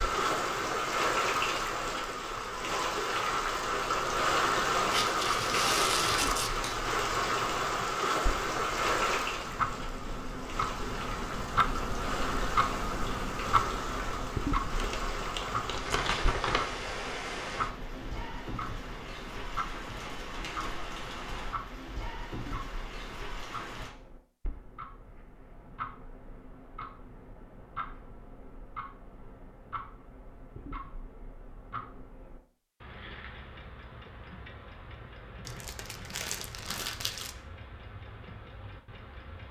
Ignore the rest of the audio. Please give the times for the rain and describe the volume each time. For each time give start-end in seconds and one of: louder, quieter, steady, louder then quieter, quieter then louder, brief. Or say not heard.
0.0-23.9 quieter.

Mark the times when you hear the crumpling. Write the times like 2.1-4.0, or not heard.
4.9-6.8, 14.8-16.6, 35.5-37.3.